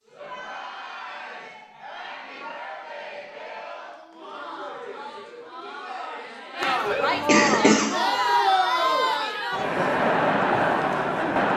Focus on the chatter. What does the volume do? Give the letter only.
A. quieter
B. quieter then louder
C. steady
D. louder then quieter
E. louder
E.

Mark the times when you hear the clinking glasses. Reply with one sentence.
The clinking glasses can't be heard in this clip.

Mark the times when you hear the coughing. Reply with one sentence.
You can hear the coughing from 7.0 to 8.2 s.